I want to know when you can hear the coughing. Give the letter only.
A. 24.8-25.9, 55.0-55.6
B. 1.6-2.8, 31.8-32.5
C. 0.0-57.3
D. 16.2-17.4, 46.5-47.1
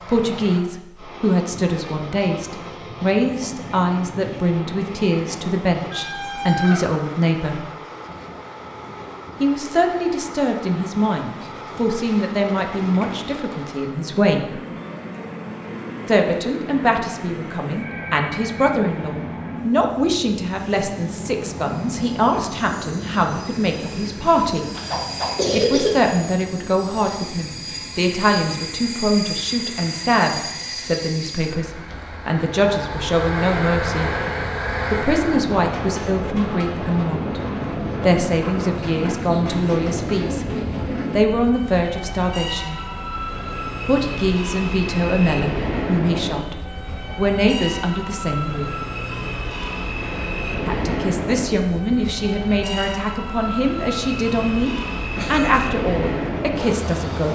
A.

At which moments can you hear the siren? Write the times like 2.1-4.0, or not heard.
not heard.